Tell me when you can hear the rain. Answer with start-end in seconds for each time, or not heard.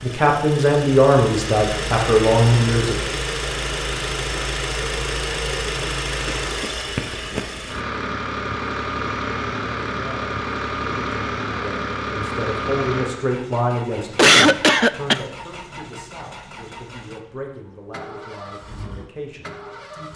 not heard.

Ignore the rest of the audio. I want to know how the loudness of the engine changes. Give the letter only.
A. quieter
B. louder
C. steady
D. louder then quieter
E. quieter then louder
A.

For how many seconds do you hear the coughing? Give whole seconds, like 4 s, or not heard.
2 s.